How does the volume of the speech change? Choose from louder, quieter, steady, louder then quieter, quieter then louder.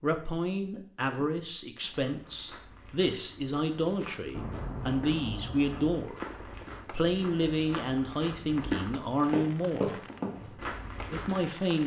steady.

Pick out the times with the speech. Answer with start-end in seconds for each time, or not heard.
0.0-6.2, 6.9-11.8.